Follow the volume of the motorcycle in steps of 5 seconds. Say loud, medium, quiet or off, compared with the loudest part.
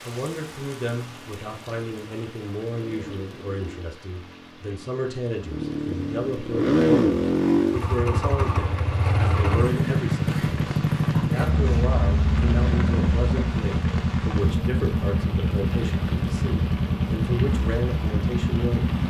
quiet, loud, loud, loud.